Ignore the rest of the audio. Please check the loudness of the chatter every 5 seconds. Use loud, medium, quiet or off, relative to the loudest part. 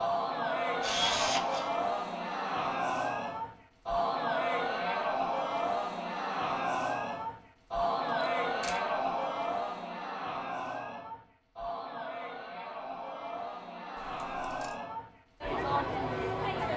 loud, loud, medium, loud.